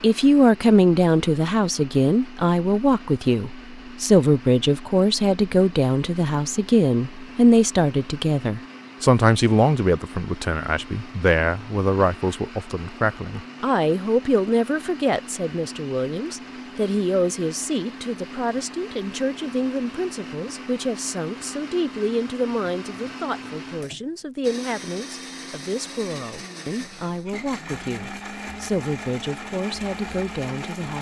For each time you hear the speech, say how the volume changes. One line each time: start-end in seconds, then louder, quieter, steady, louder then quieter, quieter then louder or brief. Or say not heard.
0.0-30.9 quieter.